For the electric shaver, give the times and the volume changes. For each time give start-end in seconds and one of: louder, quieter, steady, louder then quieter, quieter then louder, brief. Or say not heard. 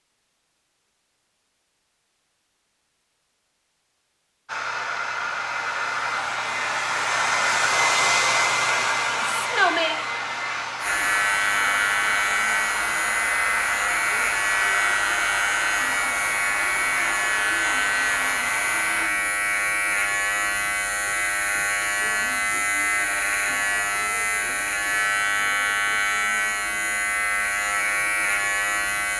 10.8-29.1 steady.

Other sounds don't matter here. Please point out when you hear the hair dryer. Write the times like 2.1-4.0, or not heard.
4.5-19.1.